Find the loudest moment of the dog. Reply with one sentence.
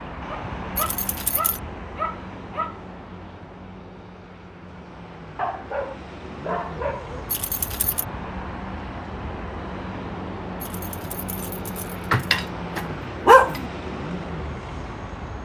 The loudest moment of the dog is at 13 seconds.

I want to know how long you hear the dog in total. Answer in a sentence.
The dog can be heard for 6 seconds in total.